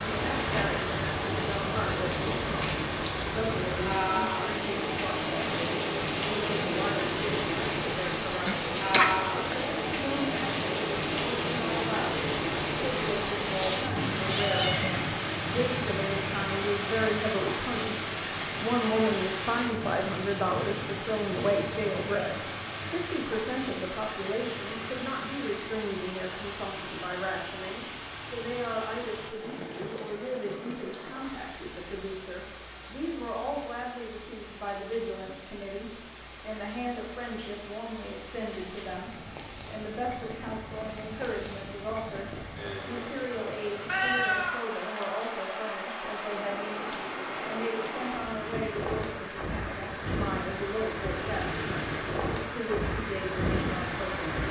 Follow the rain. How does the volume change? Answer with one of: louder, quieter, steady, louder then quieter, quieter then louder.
quieter then louder.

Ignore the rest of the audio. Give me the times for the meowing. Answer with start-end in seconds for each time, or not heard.
13.6-14.9, 43.9-45.1.